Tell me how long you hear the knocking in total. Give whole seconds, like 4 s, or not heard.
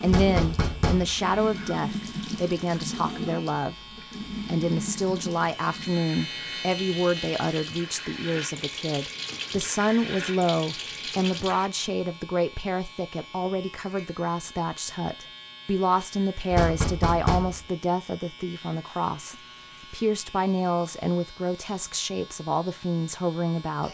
3 s.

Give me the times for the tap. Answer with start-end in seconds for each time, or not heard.
0.0-11.7.